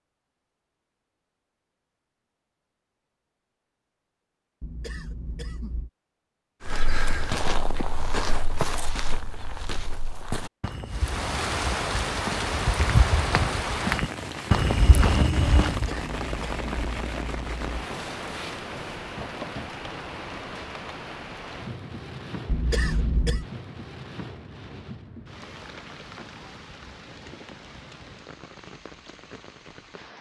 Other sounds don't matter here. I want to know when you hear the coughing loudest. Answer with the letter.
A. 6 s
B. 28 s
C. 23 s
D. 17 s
C.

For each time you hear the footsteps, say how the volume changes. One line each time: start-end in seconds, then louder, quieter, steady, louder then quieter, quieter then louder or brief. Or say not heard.
6.7-15.9 quieter then louder.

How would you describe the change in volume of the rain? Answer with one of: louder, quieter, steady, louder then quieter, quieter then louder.
quieter.